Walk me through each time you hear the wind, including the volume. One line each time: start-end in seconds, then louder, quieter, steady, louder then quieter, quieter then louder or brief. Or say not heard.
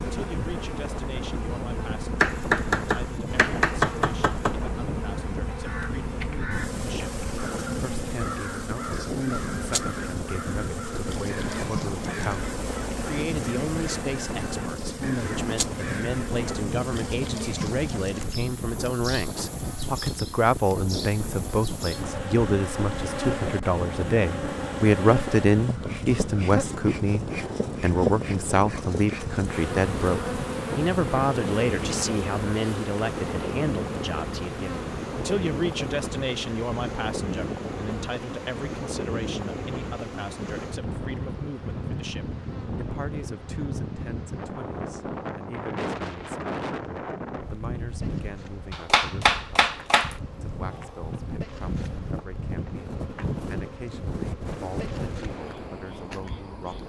0.0-56.8 steady.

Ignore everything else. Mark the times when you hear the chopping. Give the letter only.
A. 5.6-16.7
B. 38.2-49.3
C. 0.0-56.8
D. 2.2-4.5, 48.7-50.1
D.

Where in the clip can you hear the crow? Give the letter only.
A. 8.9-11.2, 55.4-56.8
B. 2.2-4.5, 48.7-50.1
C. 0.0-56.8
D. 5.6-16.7
D.